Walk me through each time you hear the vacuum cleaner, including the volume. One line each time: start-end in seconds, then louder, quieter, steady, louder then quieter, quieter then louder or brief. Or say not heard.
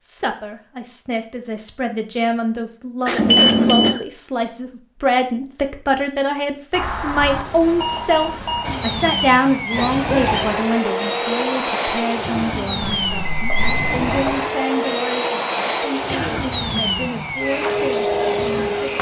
8.6-18.9 steady.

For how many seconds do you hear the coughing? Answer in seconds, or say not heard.
2 s.